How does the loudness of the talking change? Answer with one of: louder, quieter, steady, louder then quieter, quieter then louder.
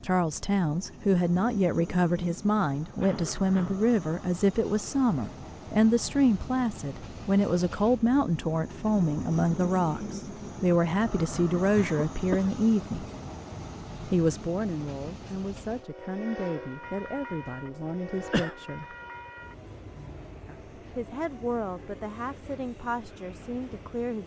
quieter.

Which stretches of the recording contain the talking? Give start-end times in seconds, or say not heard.
0.0-13.1, 14.1-18.9, 20.4-24.2.